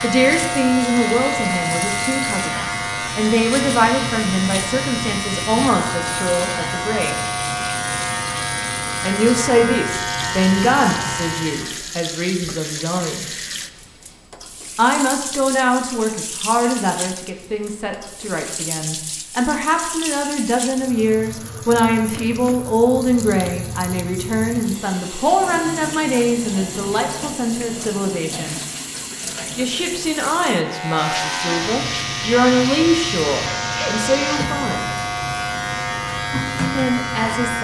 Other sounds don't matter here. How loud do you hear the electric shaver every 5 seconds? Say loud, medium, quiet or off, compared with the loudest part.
loud, loud, loud, off, off, off, loud, loud.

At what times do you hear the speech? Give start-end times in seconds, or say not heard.
0.0-7.2, 9.0-13.2, 14.8-28.6, 29.6-34.9, 36.8-37.5.